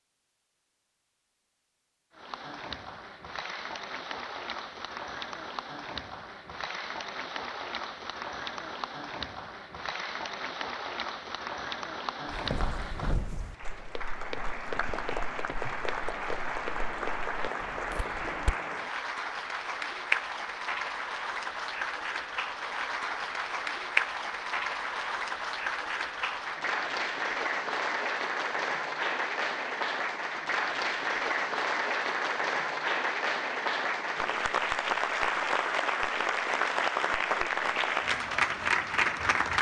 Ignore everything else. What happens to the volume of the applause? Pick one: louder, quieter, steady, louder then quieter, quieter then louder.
louder.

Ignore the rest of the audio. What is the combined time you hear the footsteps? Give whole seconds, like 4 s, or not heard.
6 s.